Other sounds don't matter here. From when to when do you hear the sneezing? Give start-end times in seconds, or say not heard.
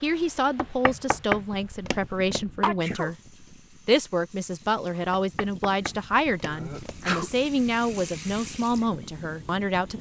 2.6-3.1, 6.4-7.3.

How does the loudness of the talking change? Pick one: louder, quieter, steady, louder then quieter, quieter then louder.
steady.